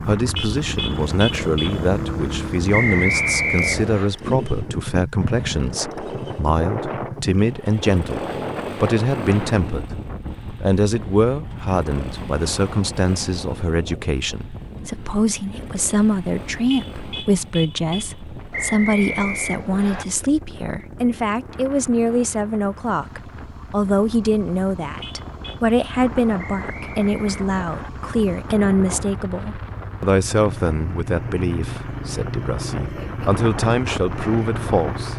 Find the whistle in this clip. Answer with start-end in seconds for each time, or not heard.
2.7-4.1, 18.5-20.1, 26.4-27.9.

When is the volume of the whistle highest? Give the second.
3 s.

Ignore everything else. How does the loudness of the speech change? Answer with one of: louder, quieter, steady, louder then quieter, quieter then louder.
steady.